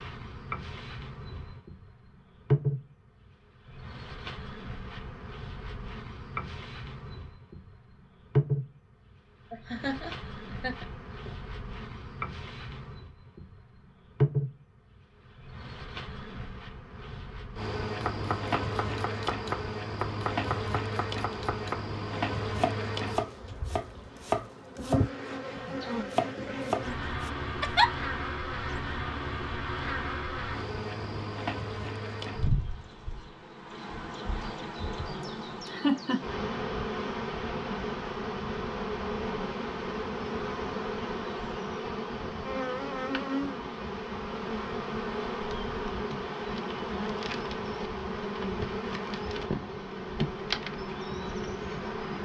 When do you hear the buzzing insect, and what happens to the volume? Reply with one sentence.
You can hear the buzzing insect from 0.0 to 52.2 s, at a steady volume.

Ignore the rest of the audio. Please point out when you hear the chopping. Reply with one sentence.
You can hear the chopping from 17.9 to 27.3 s.